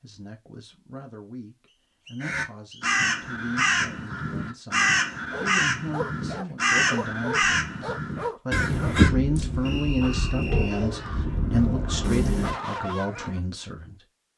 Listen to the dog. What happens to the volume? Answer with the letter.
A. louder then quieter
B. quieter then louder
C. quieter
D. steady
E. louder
B.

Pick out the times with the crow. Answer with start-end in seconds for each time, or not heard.
2.2-12.5.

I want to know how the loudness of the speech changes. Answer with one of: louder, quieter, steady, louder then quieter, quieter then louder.
louder.